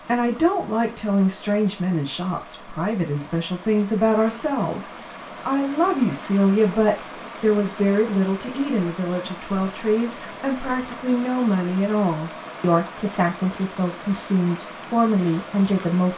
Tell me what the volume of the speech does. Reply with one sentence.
The loudness of the speech stays about the same.